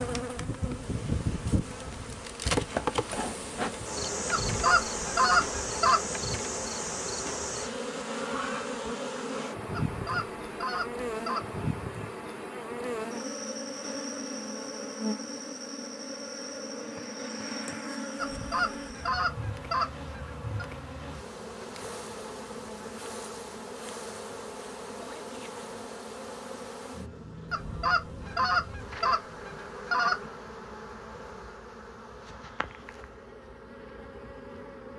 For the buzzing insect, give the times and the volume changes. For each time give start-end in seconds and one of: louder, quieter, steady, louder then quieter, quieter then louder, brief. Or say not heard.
0.0-34.9 quieter.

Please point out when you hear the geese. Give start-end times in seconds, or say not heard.
4.3-6.0, 9.7-11.6, 18.2-20.6, 27.5-30.3.